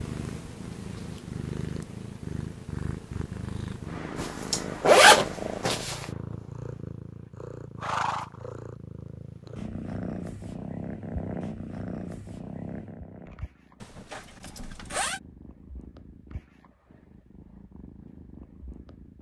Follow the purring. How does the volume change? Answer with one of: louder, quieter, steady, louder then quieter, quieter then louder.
quieter.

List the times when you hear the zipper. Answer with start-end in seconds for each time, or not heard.
4.2-6.0, 13.8-15.2.